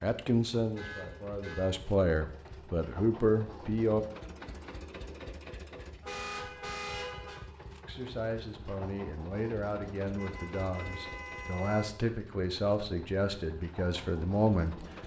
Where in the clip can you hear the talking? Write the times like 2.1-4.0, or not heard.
0.0-4.0, 7.8-14.8.